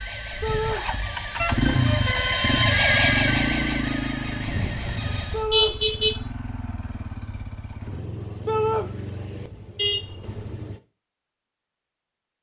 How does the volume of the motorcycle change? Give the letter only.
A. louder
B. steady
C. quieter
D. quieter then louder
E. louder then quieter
C.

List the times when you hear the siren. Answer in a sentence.
The siren can be heard from 0.0 to 5.5 s.